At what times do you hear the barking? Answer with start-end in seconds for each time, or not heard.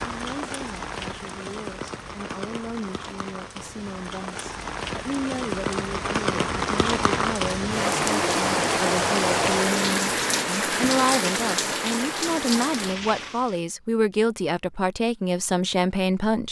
not heard.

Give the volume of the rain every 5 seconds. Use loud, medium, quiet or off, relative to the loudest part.
medium, loud, loud, off.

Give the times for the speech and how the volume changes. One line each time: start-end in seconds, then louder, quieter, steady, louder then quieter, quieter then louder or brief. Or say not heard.
0.0-16.4 louder.